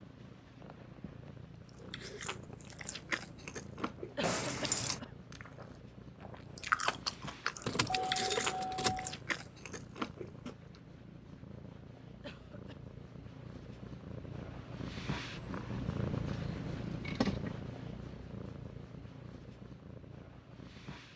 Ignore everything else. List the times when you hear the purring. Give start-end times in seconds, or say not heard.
0.0-21.1.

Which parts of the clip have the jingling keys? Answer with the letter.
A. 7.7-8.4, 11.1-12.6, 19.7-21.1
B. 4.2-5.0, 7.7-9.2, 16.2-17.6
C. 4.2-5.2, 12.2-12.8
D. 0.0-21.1
B.